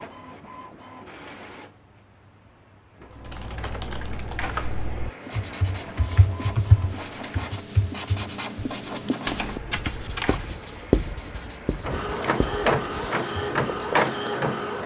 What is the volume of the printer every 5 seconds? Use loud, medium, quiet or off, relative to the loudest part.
quiet, quiet, loud.